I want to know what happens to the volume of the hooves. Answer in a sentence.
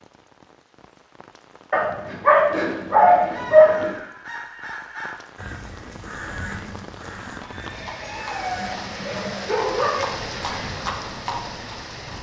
The loudness of the hooves goes up.